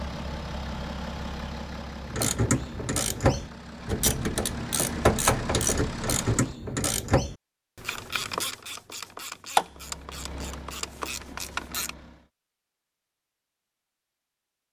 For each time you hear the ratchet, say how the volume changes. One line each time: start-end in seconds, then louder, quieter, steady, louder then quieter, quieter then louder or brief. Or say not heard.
2.0-11.9 quieter.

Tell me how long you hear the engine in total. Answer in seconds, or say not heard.
9 s.